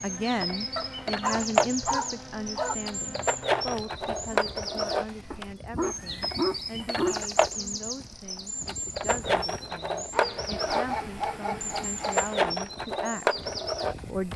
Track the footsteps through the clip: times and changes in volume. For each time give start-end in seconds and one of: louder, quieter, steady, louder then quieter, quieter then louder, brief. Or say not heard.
not heard.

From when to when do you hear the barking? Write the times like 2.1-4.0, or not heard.
0.8-2.8, 5.3-7.2, 10.1-12.4.